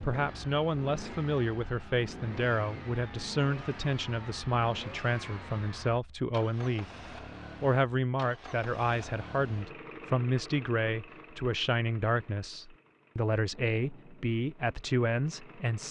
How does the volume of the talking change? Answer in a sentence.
The volume of the talking stays about the same.